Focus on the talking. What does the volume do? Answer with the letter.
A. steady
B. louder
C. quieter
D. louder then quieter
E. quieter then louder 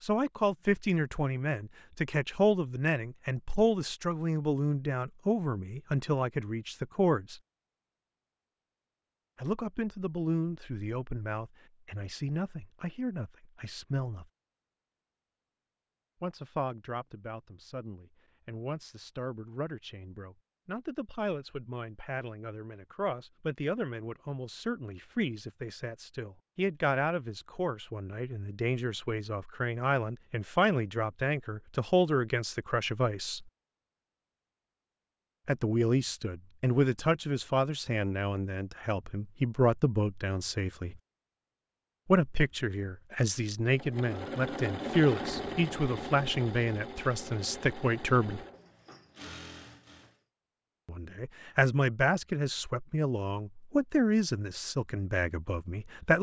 E.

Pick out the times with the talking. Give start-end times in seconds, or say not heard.
0.0-7.4, 9.3-14.2, 16.2-33.5, 35.5-41.0, 42.0-48.4, 50.9-56.1.